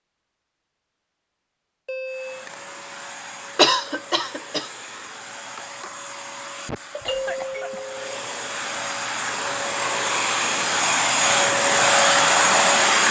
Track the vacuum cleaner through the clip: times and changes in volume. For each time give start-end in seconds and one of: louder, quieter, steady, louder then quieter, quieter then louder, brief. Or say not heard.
2.0-13.0 louder.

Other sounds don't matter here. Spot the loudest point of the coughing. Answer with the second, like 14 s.
4 s.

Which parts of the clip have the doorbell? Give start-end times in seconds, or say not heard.
1.9-2.5, 7.0-8.2.